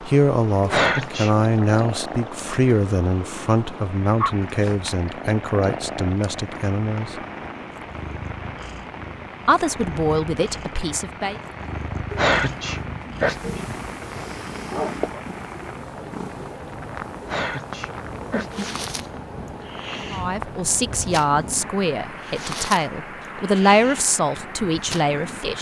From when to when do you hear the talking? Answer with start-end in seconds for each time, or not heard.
0.0-7.2, 9.4-11.4, 20.1-25.5.